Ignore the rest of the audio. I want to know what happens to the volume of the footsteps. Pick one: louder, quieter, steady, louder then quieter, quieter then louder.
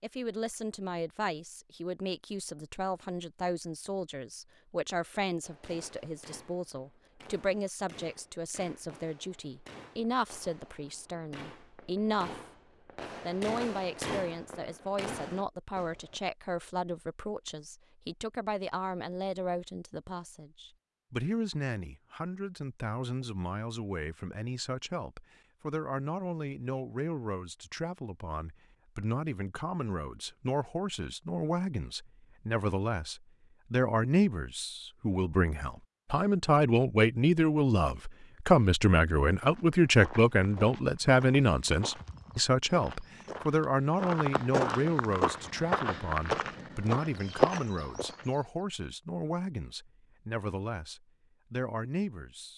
louder.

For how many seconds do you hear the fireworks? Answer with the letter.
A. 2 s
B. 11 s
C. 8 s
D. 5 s
B.